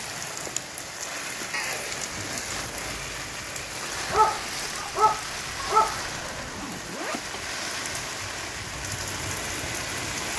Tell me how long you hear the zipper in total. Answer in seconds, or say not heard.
2 s.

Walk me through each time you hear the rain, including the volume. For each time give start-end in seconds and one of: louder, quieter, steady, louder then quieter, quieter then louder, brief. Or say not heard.
0.0-10.3 steady.